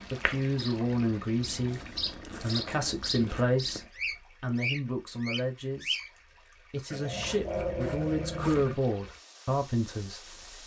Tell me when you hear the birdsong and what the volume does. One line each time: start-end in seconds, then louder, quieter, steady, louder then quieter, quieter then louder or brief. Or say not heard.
0.0-6.1 louder.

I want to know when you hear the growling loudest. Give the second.
8 s.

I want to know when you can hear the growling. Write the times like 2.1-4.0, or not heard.
1.8-3.5, 6.9-8.8.